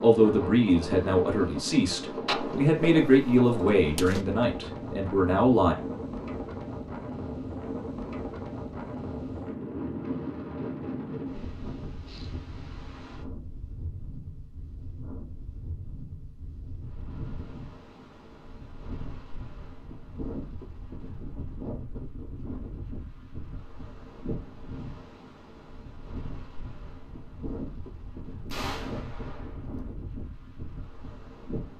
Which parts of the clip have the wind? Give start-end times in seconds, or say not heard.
0.0-31.7.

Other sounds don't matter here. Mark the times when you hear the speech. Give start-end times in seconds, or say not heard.
0.0-5.8.